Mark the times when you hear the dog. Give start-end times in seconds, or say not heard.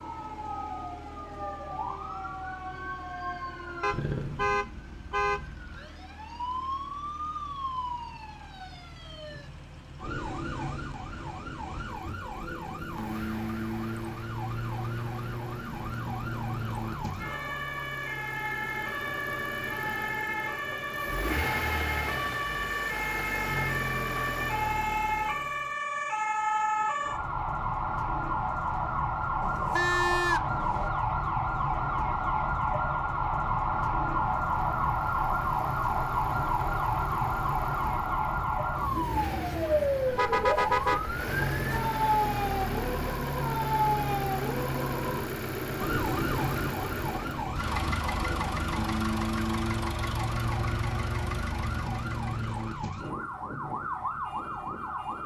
not heard.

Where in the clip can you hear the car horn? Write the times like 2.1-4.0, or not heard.
3.8-5.4, 29.4-30.9, 40.0-41.1.